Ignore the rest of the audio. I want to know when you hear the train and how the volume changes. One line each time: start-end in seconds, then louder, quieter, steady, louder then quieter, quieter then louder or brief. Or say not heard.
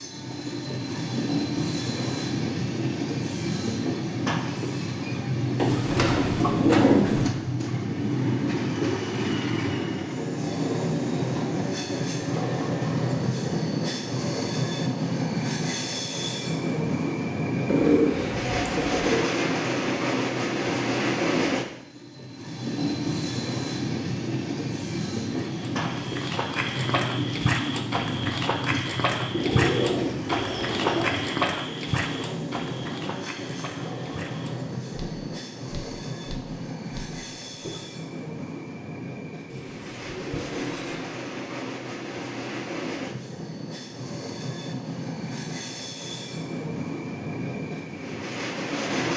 0.0-49.1 quieter.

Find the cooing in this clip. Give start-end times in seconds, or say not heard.
5.5-7.3, 17.6-19.2, 29.3-31.2, 39.5-41.0.